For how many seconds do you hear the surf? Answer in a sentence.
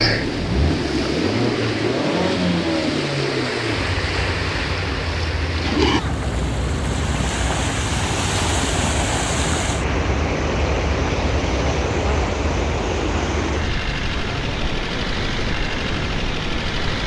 You can hear the surf for 17 seconds altogether.